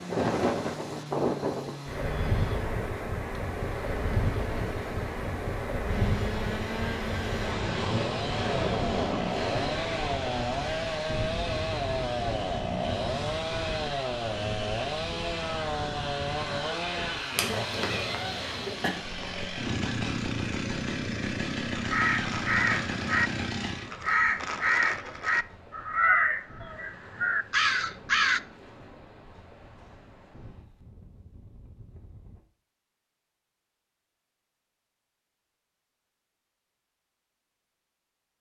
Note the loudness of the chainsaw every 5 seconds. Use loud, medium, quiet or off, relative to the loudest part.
medium, loud, loud, loud, loud, off, off, off.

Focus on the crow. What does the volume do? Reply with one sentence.
The volume of the crow stays about the same.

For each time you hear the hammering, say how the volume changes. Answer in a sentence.
The hammering can't be heard in this clip.